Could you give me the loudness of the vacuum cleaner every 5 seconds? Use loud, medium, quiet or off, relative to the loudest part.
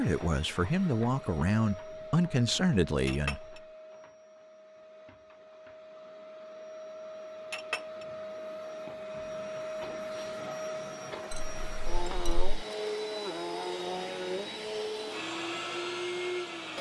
medium, medium, loud, loud.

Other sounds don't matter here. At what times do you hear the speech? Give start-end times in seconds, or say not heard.
0.0-3.6.